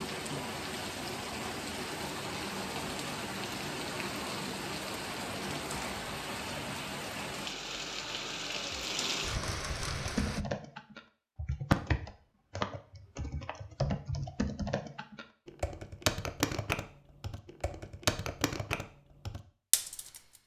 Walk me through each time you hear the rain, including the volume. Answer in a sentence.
You can hear the rain from 0.0 to 10.4 s, at a steady volume.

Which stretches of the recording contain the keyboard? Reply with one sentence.
You can hear the keyboard from 9.7 to 20.2 s.